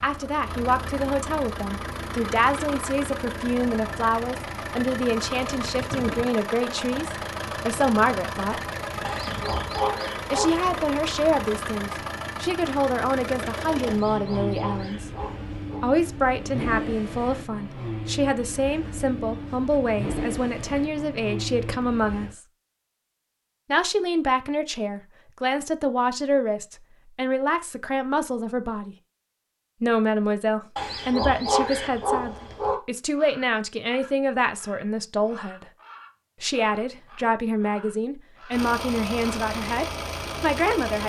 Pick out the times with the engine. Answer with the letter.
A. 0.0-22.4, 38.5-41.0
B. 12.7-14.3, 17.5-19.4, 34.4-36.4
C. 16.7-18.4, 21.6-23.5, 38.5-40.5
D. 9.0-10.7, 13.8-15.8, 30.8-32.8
A.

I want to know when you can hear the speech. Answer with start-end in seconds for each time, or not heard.
0.0-8.6, 10.3-15.1, 15.8-22.4, 23.6-28.9, 29.8-35.7, 36.4-41.0.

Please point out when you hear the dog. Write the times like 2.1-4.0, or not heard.
9.0-10.7, 13.8-15.8, 30.8-32.8.